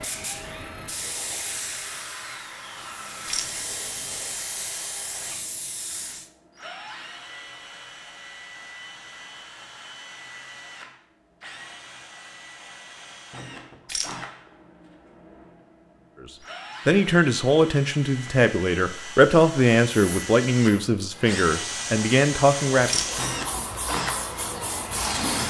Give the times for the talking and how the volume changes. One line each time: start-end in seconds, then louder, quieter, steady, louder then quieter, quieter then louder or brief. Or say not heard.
16.9-23.0 steady.